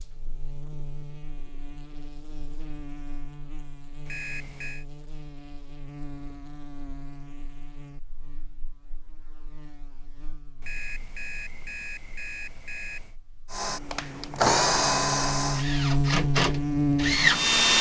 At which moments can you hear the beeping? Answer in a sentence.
You can hear the beeping from 4.0 to 4.8 s and from 10.6 to 13.2 s.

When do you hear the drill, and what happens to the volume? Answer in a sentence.
The drill can be heard from 13.5 to 17.7 s, getting quieter then louder.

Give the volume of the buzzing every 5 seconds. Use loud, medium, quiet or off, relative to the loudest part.
quiet, quiet, quiet, loud.